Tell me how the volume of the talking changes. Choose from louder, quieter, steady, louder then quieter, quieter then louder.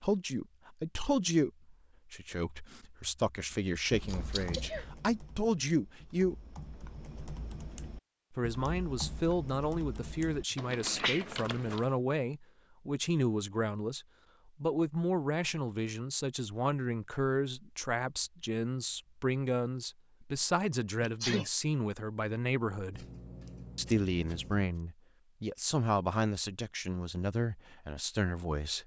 steady.